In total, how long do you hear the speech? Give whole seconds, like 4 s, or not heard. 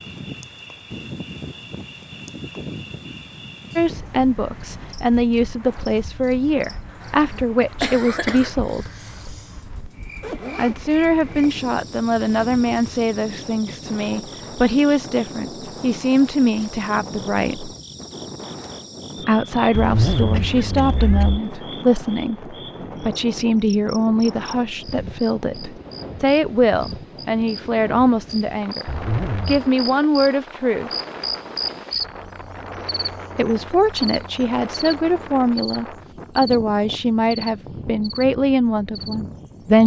30 s.